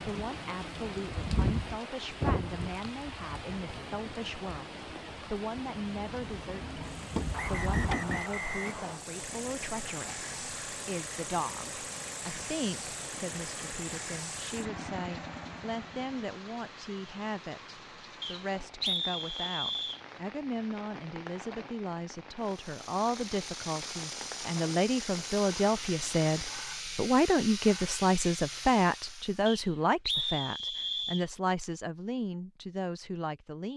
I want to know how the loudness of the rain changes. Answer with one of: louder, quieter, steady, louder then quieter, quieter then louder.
quieter.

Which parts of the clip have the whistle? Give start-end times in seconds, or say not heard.
7.3-9.0, 18.2-20.0, 29.4-31.2.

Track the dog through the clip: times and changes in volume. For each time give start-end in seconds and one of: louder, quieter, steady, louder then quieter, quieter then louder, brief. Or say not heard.
not heard.